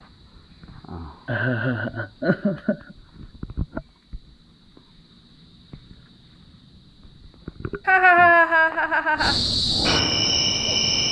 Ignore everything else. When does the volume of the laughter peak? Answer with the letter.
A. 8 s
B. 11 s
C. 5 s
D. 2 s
A.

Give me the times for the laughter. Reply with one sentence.
You can hear the laughter from 1.2 to 3.0 s and from 7.8 to 9.3 s.